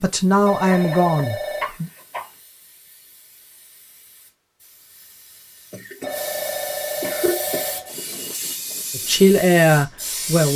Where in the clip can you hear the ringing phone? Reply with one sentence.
The ringing phone can be heard from 0.5 to 1.7 s and from 6.0 to 7.9 s.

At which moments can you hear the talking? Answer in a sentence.
You can hear the talking from 0.0 to 1.9 s and from 8.9 to 10.5 s.